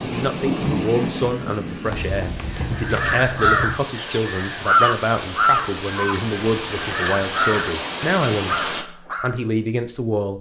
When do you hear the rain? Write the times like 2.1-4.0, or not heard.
0.0-8.8.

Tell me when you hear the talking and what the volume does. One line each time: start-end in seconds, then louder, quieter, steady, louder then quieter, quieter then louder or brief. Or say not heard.
0.0-10.3 steady.